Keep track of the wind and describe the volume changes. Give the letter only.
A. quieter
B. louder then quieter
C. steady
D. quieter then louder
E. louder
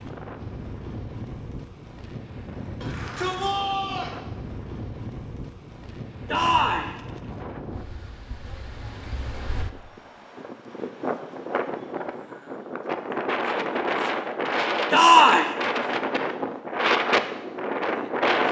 E.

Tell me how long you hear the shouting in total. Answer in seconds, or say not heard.
3 s.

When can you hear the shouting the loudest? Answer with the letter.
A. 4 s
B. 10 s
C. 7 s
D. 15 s
D.